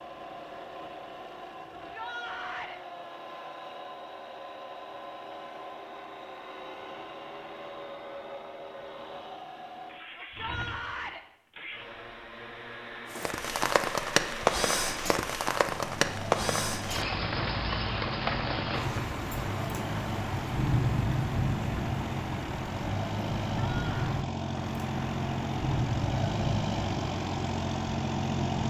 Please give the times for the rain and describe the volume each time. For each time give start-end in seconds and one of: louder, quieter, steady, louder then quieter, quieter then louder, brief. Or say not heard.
13.1-28.6 quieter.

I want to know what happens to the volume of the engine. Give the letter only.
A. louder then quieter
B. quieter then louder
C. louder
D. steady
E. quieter
C.